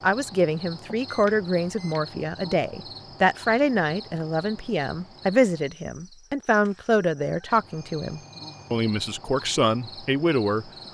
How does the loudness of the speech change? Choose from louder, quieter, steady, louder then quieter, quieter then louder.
steady.